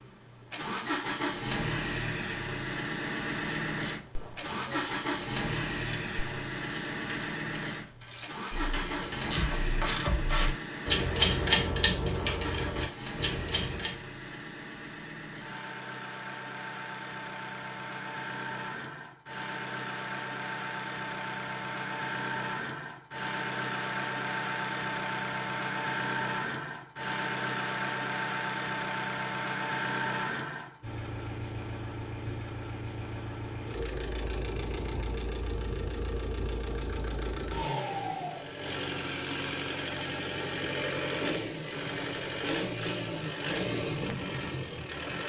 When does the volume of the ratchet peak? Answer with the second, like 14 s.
11 s.